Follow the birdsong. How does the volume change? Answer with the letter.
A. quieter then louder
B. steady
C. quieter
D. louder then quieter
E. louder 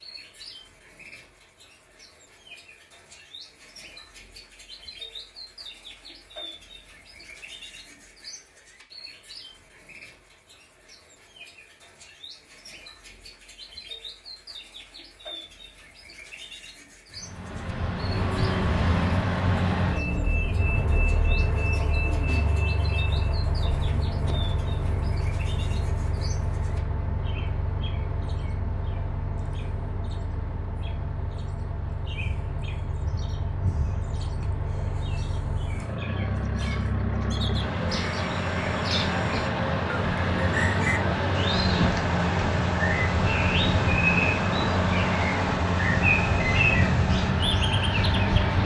E.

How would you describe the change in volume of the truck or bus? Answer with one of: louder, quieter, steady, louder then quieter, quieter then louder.
quieter then louder.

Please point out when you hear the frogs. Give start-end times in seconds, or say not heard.
not heard.